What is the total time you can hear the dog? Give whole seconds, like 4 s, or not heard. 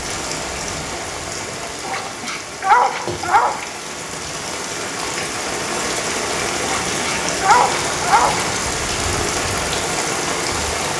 4 s.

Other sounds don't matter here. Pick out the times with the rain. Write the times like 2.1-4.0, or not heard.
0.0-10.9.